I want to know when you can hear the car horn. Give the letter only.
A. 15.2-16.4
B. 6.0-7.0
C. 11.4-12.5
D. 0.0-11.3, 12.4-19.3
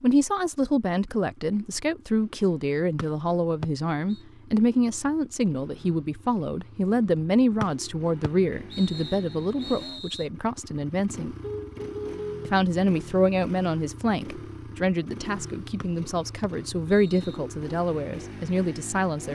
C.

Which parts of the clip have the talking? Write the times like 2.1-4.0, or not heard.
0.0-11.3, 12.4-19.3.